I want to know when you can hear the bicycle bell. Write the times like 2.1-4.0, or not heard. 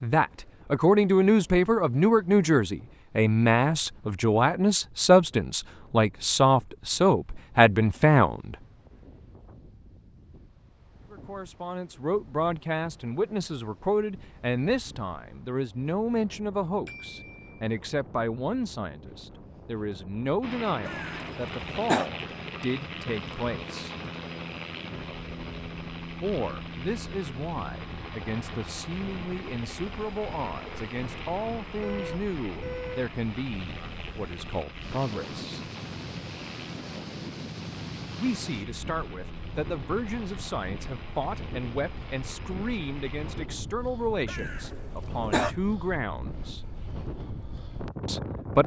not heard.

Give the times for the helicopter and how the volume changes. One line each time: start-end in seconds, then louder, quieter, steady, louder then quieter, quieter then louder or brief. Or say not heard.
20.4-43.5 quieter.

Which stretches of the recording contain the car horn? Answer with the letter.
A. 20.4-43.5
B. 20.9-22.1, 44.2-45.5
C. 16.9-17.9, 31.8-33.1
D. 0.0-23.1
C.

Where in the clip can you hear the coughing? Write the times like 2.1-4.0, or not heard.
20.9-22.1, 44.2-45.5.